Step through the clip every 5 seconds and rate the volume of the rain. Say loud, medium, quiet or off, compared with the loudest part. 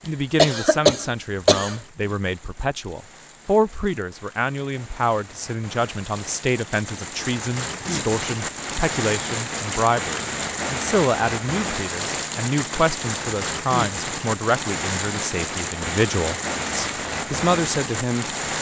quiet, loud, loud, loud.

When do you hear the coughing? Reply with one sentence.
You can hear the coughing from 0.3 to 1.8 s.